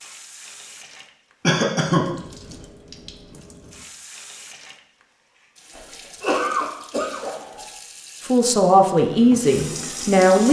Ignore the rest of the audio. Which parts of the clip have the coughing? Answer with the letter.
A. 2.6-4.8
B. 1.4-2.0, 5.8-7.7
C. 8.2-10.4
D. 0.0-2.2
B.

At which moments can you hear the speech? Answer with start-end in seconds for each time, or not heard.
8.2-10.4.